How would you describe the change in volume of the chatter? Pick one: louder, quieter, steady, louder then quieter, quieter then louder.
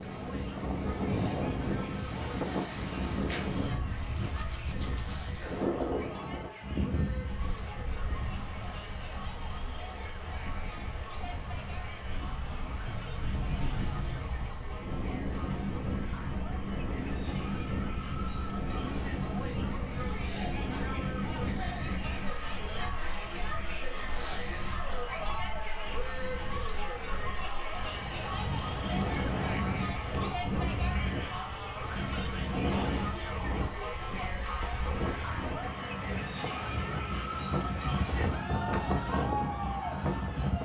louder.